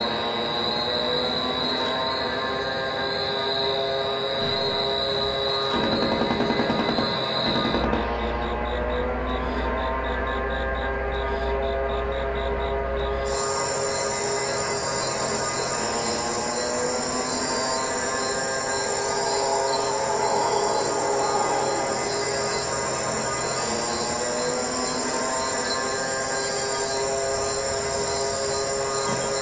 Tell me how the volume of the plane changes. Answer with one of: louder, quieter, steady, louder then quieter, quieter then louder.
steady.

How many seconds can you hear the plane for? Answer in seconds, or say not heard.
29 s.